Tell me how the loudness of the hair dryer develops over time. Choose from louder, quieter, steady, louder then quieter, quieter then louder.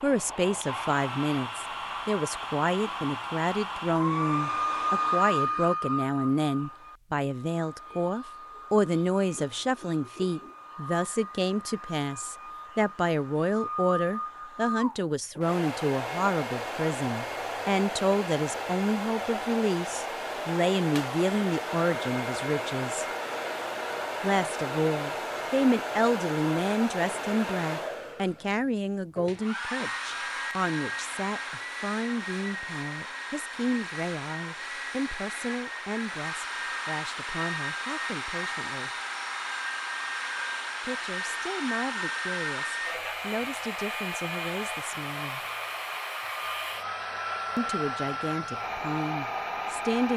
steady.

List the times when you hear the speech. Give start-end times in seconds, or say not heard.
0.0-23.1, 24.2-38.9, 40.8-45.4, 47.5-50.1.